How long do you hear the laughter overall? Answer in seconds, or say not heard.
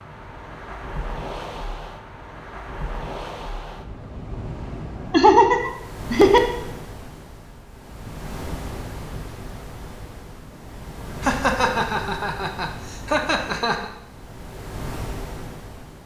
4 s.